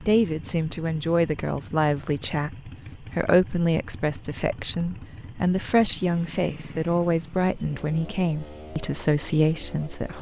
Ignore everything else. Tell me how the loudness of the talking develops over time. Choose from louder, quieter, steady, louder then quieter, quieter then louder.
steady.